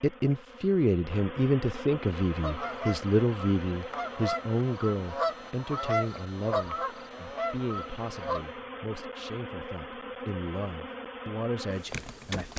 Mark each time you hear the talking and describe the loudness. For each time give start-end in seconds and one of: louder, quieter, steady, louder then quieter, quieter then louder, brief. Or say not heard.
0.0-12.5 quieter.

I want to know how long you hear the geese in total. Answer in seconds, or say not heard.
6 s.